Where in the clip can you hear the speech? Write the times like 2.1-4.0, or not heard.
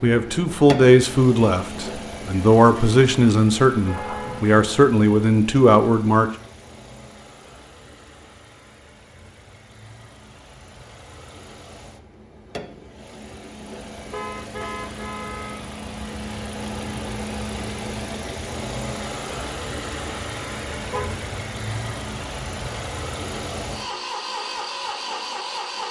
0.0-6.3.